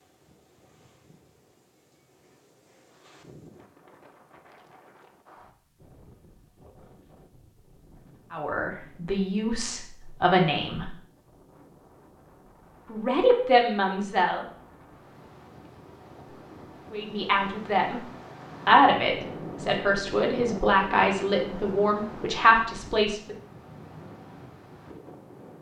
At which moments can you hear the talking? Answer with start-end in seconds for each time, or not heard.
8.3-10.9, 12.8-14.4, 16.9-18.0, 18.6-23.4.